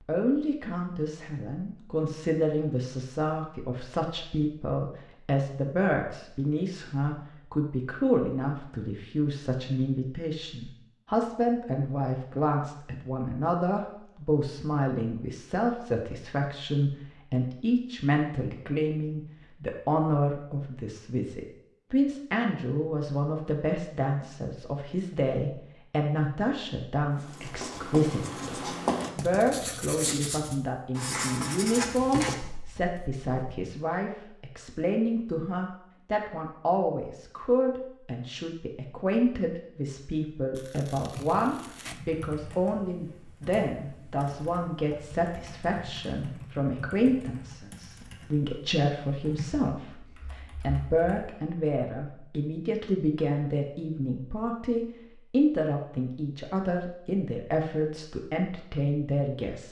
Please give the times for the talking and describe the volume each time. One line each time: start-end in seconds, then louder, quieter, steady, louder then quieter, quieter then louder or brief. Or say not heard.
0.1-59.6 steady.